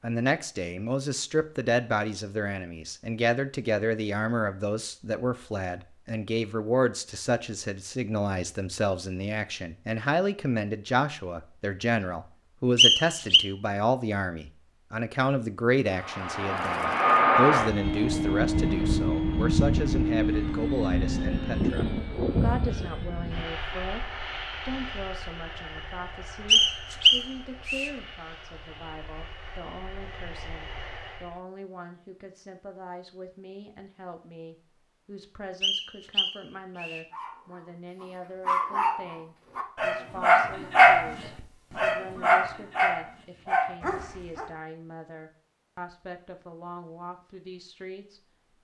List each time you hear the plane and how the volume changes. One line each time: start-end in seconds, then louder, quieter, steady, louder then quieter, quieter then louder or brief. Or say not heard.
15.9-31.4 quieter.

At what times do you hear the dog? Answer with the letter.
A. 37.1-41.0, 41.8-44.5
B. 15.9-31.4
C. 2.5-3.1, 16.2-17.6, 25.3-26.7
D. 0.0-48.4
A.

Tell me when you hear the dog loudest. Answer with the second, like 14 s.
41 s.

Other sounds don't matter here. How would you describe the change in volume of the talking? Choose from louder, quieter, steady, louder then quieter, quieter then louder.
quieter.